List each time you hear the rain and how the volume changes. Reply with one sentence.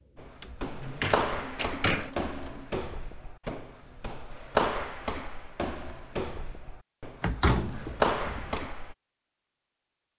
You can't hear the rain here.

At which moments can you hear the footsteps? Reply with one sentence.
The footsteps can be heard from 0.1 to 8.9 s.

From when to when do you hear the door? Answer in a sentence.
You can hear the door from 0.6 to 2.1 s and from 7.2 to 8.7 s.